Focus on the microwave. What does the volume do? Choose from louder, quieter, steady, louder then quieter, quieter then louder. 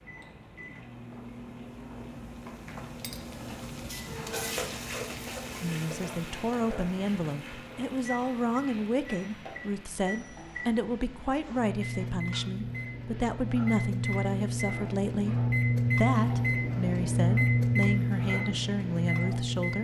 louder.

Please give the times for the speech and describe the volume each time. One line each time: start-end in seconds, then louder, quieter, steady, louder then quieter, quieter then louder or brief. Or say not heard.
5.6-19.8 steady.